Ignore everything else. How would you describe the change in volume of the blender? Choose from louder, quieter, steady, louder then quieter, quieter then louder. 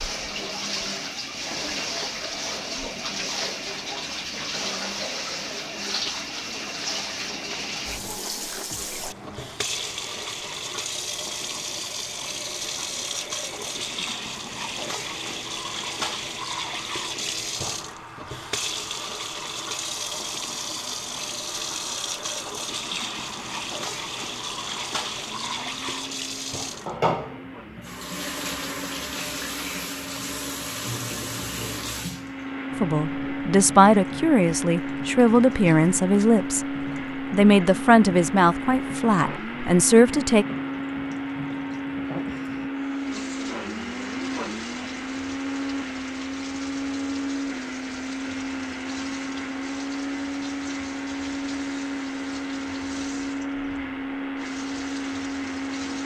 louder.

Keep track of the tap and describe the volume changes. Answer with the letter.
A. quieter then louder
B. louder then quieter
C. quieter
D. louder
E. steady
C.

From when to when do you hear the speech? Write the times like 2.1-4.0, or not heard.
32.8-40.5.